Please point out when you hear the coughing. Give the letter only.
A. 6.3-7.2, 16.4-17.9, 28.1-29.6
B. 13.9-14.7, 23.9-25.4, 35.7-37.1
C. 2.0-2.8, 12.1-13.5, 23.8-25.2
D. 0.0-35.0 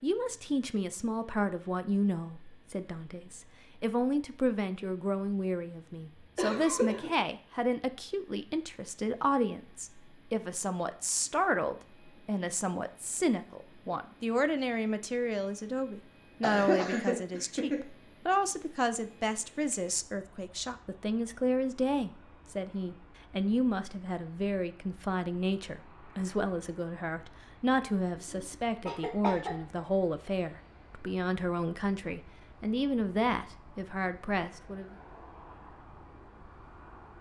A.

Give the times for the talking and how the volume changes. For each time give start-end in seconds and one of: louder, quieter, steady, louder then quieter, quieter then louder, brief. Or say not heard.
0.0-35.0 steady.